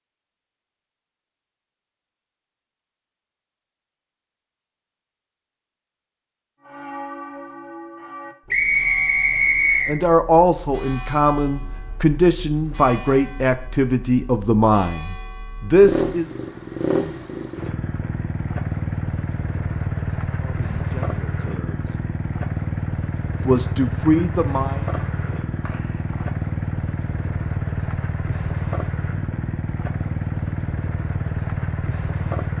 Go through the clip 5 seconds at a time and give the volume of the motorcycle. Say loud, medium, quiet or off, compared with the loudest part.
off, off, off, loud, loud, loud, loud.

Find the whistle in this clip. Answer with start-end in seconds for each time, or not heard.
8.5-9.9, 24.9-26.3.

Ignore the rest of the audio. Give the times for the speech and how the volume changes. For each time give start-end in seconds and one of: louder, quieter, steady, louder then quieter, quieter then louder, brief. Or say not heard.
9.8-16.2 steady
20.4-21.9 brief
23.4-24.9 brief.